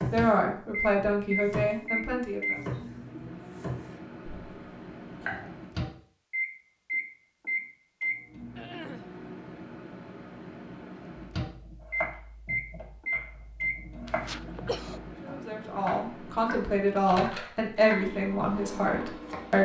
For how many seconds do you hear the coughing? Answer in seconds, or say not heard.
3 s.